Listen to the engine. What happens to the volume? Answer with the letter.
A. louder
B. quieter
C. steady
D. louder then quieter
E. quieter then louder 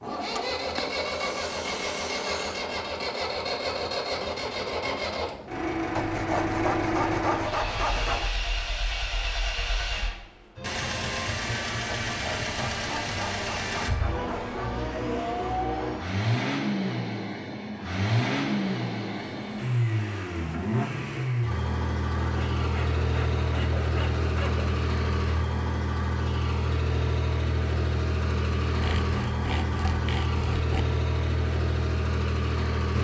C.